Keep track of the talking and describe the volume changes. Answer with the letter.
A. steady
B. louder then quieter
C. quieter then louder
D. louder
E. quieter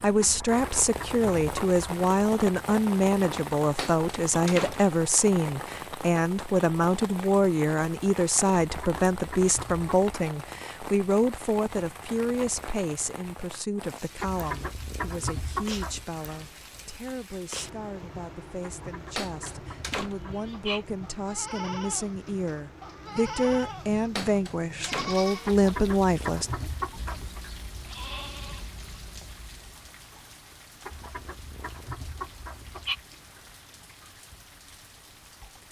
C.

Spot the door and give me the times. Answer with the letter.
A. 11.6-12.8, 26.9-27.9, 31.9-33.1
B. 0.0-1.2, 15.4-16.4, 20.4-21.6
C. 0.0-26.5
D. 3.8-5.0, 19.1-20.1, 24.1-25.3
D.